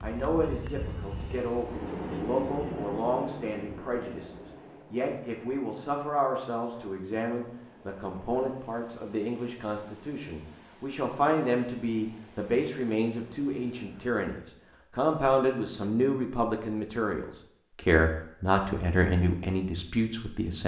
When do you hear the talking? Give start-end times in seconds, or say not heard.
0.0-20.6.